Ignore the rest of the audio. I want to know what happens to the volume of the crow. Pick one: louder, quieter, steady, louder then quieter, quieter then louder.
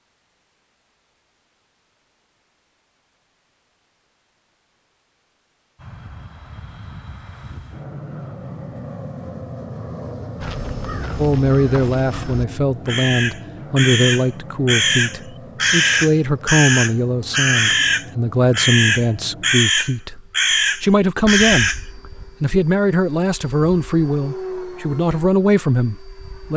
louder.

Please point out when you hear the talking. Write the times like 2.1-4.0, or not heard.
11.2-21.7, 22.4-26.5.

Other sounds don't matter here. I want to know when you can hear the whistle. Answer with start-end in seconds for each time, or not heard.
not heard.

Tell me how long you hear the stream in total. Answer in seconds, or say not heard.
not heard.